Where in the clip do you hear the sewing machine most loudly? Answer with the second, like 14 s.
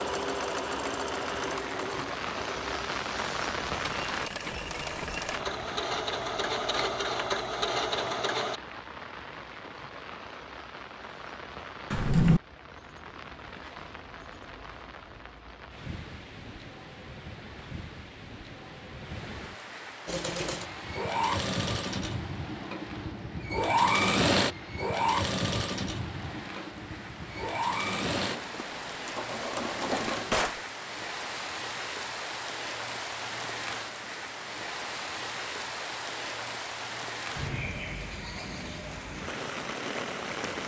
24 s.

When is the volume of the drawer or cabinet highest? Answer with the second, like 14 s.
12 s.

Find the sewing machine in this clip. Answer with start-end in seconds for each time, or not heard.
0.0-8.6, 20.1-30.4.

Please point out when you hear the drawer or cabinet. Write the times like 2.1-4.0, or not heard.
11.9-12.4, 29.9-30.6.